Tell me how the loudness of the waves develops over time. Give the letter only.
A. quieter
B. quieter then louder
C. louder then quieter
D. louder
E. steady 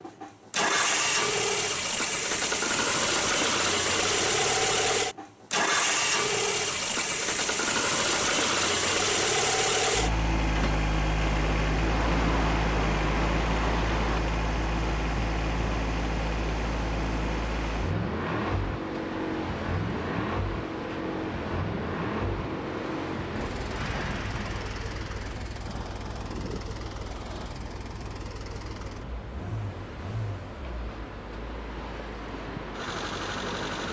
A.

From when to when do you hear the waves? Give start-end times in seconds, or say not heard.
11.2-33.8.